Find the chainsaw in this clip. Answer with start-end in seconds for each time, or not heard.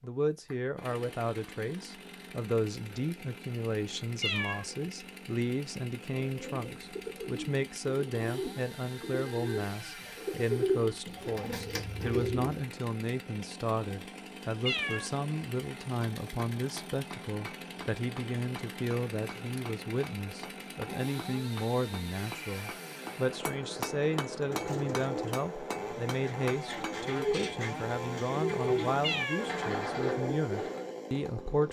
0.0-31.6.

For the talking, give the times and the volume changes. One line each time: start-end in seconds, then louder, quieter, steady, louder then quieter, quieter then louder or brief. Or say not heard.
0.0-31.6 steady.